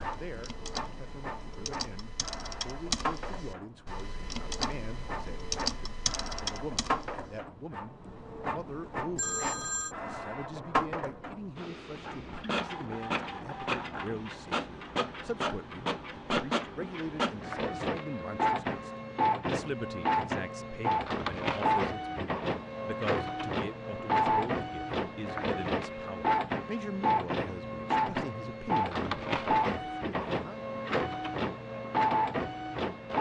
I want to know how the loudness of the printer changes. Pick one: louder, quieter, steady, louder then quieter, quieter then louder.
louder.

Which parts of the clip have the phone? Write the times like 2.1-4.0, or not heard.
9.2-9.9.